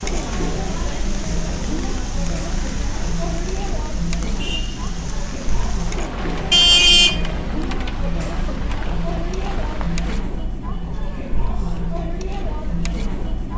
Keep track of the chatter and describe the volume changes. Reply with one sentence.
The loudness of the chatter stays about the same.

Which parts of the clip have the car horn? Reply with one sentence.
The car horn can be heard from 6.5 to 7.2 s and from 8.1 to 8.5 s.